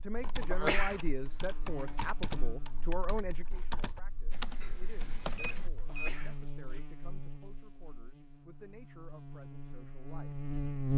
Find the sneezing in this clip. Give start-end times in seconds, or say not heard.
0.5-1.1, 5.8-6.8.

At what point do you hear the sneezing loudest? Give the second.
1 s.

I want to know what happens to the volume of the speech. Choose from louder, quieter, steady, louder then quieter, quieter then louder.
quieter.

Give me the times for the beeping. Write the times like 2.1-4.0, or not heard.
5.3-6.2.